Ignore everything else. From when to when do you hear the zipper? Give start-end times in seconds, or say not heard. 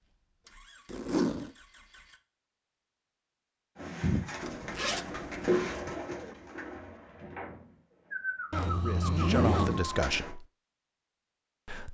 0.8-1.5, 4.4-5.6, 8.5-9.8.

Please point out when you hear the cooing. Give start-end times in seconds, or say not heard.
3.8-10.3.